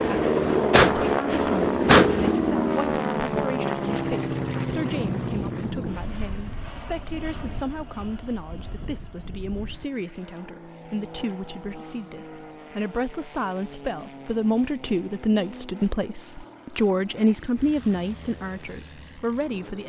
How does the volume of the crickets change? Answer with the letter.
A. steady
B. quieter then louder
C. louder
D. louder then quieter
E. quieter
B.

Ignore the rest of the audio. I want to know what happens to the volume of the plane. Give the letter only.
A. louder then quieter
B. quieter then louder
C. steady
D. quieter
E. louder
D.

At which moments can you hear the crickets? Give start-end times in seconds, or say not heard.
4.2-19.8.